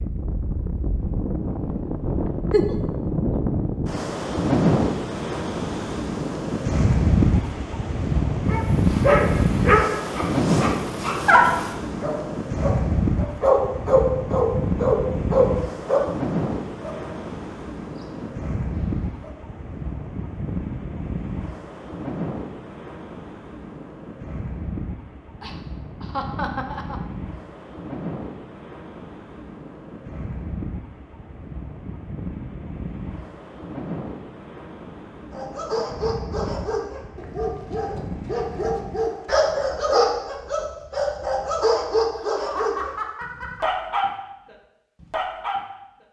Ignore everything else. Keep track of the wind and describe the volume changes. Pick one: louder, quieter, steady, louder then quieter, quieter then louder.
quieter.